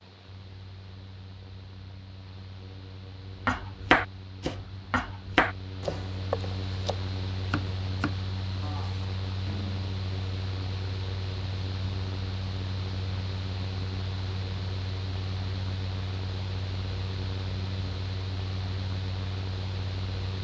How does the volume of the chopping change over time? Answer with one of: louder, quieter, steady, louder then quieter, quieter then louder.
quieter.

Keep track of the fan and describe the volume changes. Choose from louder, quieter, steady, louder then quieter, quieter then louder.
louder.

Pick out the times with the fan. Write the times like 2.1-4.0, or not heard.
0.0-20.3.